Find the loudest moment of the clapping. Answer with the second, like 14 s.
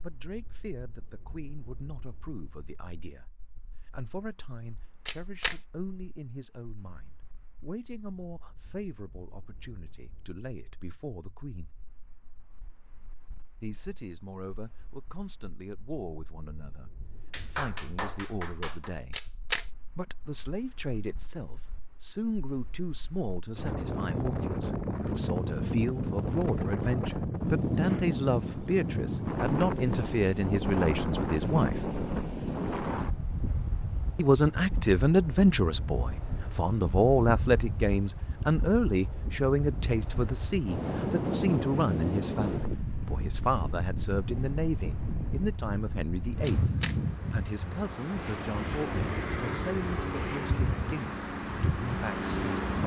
18 s.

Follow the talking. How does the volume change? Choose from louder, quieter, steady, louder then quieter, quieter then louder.
louder then quieter.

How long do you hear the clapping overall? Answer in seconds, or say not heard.
2 s.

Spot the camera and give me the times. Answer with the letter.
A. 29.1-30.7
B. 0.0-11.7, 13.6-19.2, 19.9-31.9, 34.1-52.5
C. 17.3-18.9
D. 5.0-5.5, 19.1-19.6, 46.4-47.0
D.